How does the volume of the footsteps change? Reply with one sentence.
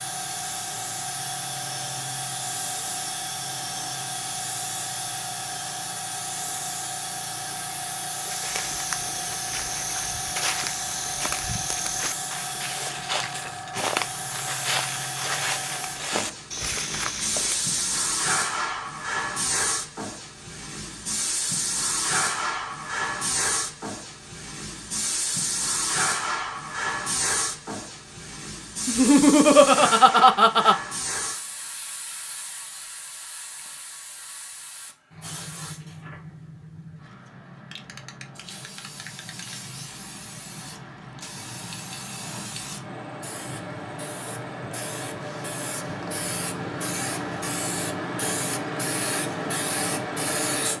The volume of the footsteps stays about the same.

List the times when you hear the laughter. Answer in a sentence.
You can hear the laughter from 28.9 to 30.8 s.